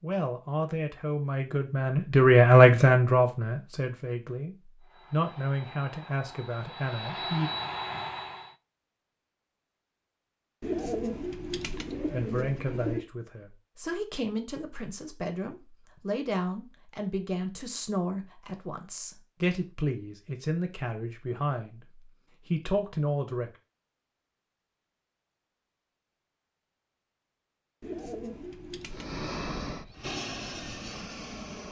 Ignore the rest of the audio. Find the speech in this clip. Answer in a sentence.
You can hear the speech from 0.0 to 7.5 s and from 12.1 to 23.5 s.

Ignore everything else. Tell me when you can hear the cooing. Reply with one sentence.
The cooing can be heard from 10.6 to 13.1 s and from 27.8 to 29.2 s.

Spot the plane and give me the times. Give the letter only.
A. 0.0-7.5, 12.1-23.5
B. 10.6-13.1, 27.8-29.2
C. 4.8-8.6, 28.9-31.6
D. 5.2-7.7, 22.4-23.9
C.